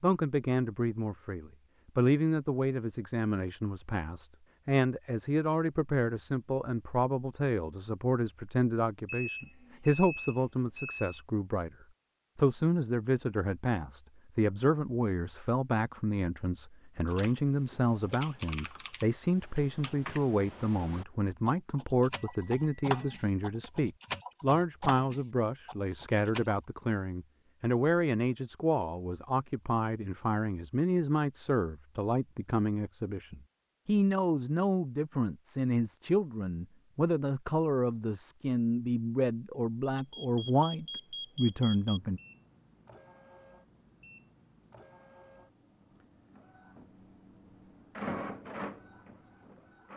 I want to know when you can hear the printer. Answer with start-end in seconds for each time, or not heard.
41.8-49.9.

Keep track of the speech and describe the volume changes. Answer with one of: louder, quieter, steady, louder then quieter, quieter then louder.
steady.